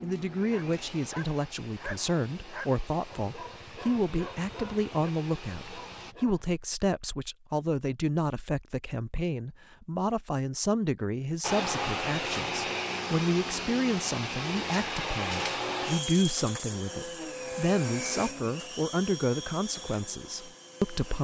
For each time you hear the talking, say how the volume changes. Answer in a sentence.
The talking can be heard from 0.0 to 21.2 s, at a steady volume.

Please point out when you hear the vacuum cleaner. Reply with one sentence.
The vacuum cleaner can be heard from 0.0 to 6.2 s and from 11.4 to 21.2 s.